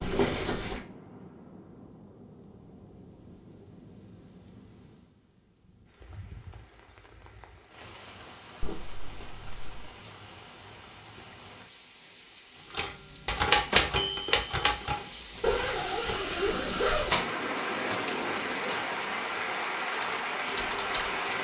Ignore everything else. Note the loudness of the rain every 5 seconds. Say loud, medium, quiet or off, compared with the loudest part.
quiet, quiet, quiet, loud, loud.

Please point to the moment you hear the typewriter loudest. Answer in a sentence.
The loudest moment of the typewriter is at 14 seconds.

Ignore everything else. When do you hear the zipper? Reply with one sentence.
The zipper can be heard from 0.0 to 0.8 s, from 8.6 to 9.9 s and from 15.4 to 17.2 s.